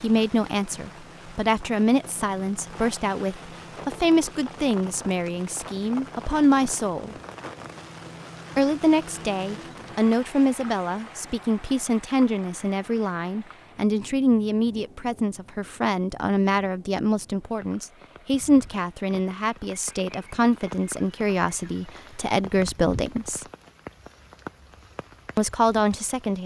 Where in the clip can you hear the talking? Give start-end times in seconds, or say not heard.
0.0-7.2, 8.6-23.4, 25.4-26.4.